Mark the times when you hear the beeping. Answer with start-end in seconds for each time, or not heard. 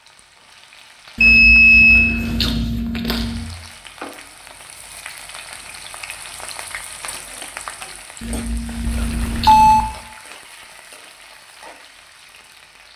1.2-2.1, 8.8-9.9.